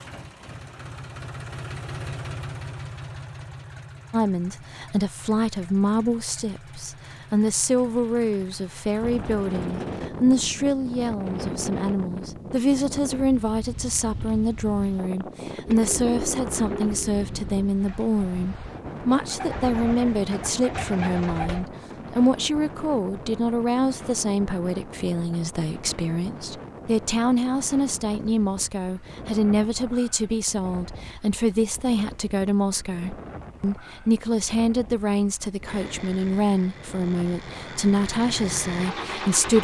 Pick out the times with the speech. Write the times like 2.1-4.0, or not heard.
4.1-39.6.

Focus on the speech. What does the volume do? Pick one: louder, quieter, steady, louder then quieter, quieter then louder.
steady.